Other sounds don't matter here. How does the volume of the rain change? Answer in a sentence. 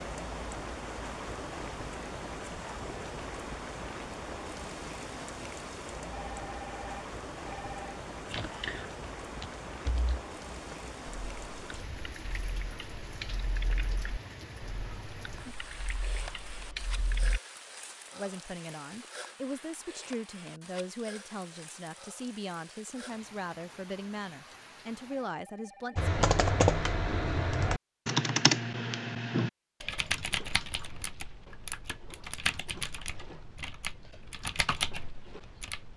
The volume of the rain goes down.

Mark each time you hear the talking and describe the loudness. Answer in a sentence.
You can hear the talking from 18.1 to 26.1 s, at a steady volume.